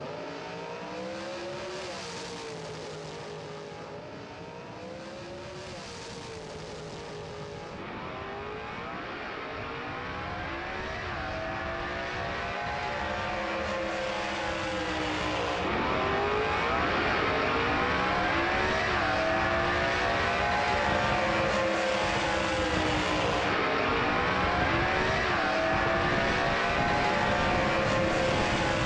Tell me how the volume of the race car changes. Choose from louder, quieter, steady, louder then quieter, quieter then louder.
louder.